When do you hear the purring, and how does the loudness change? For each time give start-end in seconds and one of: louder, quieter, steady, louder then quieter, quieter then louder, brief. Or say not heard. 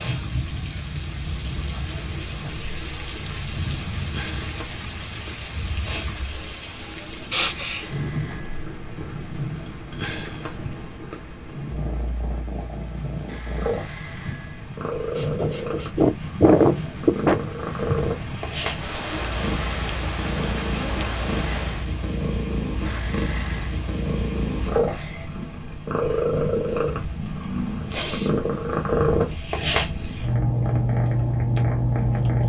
0.0-32.4 louder.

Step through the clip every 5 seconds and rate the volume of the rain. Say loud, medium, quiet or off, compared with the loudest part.
loud, loud, medium, loud, loud, off, off.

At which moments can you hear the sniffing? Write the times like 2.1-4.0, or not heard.
6.3-7.8, 15.2-17.4, 27.9-28.4.